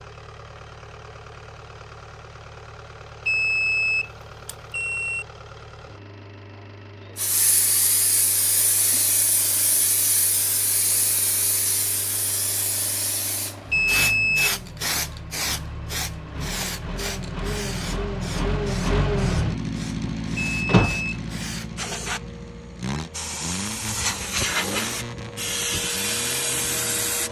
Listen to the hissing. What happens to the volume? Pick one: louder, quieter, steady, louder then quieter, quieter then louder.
quieter then louder.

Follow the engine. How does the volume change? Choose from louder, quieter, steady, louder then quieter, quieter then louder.
louder then quieter.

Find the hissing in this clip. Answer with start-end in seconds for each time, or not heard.
7.2-27.2.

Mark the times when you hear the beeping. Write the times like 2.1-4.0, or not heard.
3.2-5.2, 13.7-14.6, 20.5-21.2.